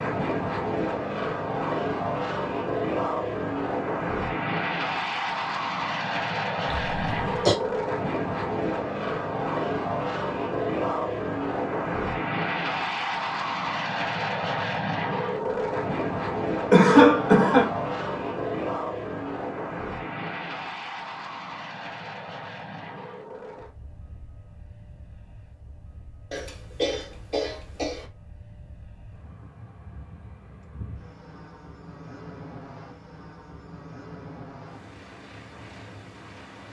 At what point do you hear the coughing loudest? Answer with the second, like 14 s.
17 s.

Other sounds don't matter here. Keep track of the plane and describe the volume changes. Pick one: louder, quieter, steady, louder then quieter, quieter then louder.
quieter.